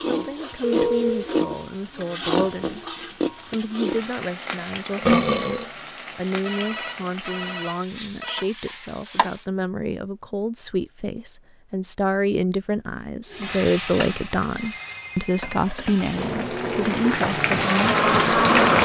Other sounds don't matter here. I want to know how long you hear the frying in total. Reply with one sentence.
You can hear the frying for 15 seconds altogether.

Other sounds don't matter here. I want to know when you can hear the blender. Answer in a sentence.
You can hear the blender from 16.1 to 18.8 s.